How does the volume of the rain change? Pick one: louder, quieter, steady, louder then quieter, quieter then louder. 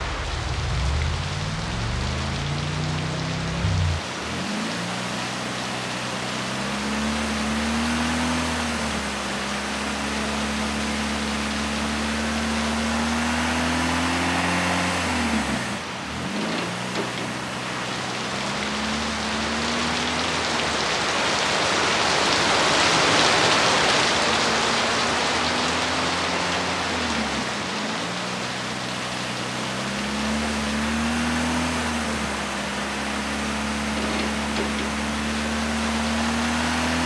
louder then quieter.